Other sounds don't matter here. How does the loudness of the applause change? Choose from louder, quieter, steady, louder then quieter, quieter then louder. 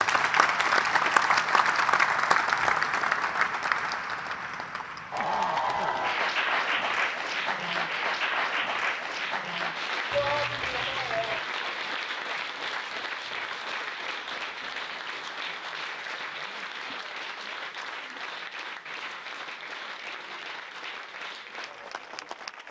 quieter.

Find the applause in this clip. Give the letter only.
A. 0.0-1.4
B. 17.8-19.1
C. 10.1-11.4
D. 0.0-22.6
D.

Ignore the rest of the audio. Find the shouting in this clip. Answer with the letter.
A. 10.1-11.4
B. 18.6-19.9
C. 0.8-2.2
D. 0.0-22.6
A.